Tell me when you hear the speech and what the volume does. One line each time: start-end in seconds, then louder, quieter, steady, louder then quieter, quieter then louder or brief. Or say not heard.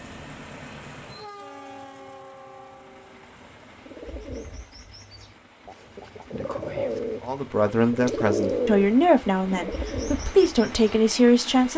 7.2-11.7 steady.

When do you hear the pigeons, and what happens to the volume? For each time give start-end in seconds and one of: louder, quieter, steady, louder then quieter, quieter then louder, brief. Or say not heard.
3.8-11.0 louder then quieter.